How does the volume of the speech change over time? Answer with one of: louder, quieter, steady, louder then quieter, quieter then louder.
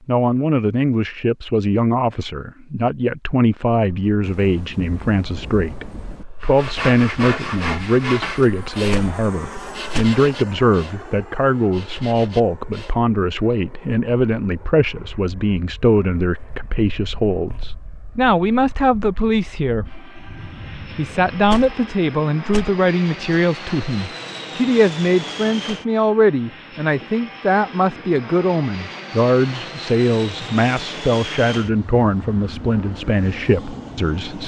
steady.